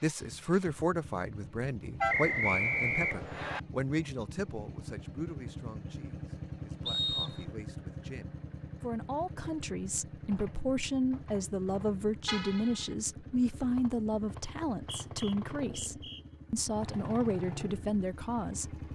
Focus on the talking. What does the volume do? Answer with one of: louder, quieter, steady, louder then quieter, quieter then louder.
quieter then louder.